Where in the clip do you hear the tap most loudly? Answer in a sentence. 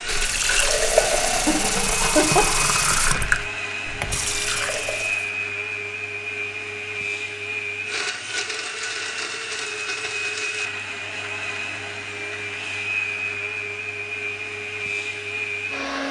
The loudest moment of the tap is at 1 second.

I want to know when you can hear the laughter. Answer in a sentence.
The laughter can be heard from 1.4 to 2.6 s.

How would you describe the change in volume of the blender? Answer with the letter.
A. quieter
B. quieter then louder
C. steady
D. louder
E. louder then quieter
C.